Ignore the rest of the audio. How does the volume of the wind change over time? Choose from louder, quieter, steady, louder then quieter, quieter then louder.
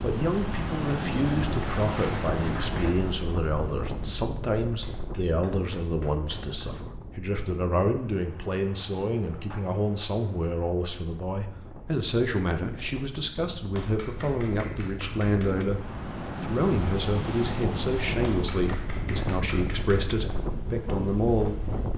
quieter then louder.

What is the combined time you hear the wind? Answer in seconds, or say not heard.
22 s.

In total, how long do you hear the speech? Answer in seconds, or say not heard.
21 s.